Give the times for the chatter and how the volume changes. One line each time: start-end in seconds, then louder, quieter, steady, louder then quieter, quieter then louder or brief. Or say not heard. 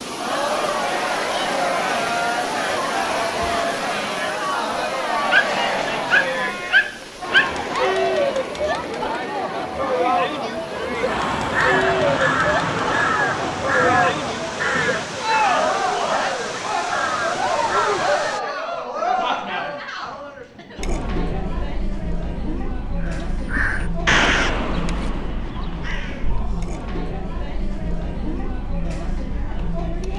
0.0-30.1 quieter.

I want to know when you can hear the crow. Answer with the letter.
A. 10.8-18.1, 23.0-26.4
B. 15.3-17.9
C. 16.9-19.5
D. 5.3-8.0
A.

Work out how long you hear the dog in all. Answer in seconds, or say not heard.
3 s.